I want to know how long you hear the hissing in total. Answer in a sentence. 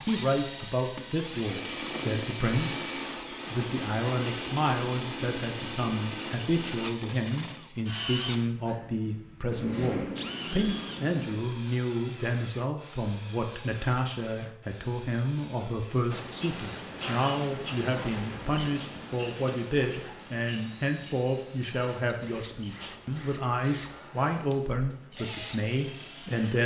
The hissing can be heard for 12 seconds in total.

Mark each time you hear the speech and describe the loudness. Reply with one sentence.
The speech can be heard from 0.0 to 26.6 s, at a steady volume.